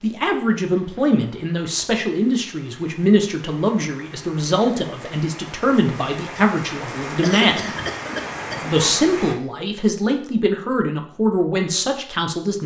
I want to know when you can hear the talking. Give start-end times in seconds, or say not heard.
0.0-7.8, 8.6-12.6.